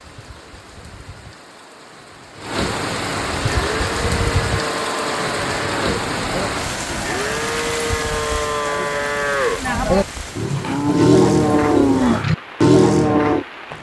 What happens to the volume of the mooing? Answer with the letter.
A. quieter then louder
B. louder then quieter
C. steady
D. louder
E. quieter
D.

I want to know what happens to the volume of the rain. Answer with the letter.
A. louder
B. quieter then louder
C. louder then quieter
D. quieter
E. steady
C.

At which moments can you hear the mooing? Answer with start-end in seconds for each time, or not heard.
3.4-13.4.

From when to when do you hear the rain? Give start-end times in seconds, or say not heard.
0.0-13.7.